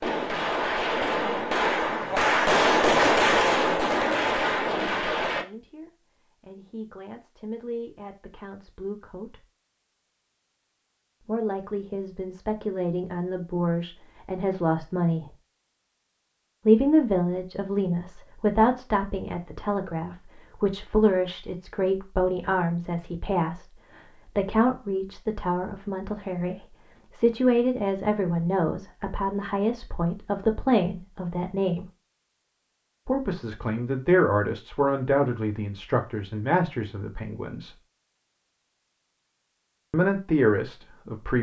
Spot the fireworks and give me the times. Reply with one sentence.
The fireworks can be heard from 0.0 to 5.5 s.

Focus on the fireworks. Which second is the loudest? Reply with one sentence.
The volume of the fireworks peaks at 3 seconds.